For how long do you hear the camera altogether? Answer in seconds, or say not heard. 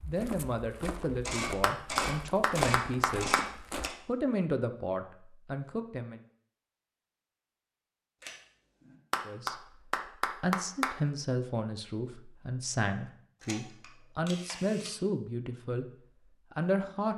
5 s.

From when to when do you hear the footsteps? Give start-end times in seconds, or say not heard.
0.0-4.0.